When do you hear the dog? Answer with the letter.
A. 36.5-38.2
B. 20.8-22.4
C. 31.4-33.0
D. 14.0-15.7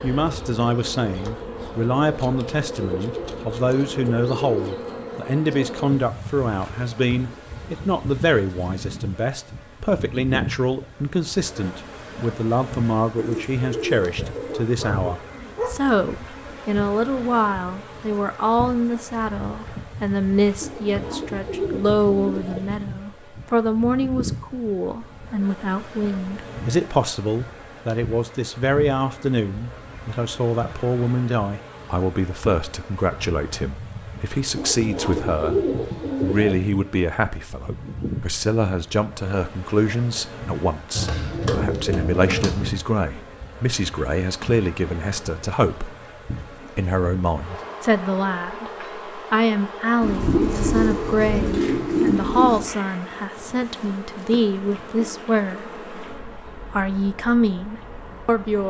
D.